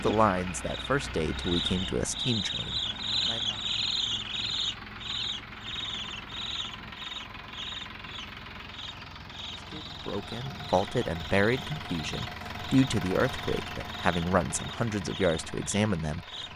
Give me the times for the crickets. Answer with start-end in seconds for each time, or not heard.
0.0-16.5.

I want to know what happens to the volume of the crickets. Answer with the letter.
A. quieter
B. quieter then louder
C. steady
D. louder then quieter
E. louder
A.